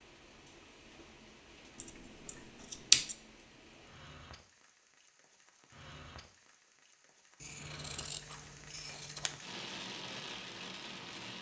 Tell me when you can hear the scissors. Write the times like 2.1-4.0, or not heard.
1.8-3.1, 7.4-9.4.